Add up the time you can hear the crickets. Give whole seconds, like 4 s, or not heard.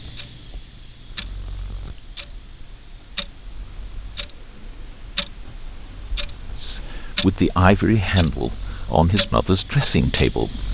11 s.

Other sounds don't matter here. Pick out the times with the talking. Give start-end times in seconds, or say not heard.
6.5-10.7.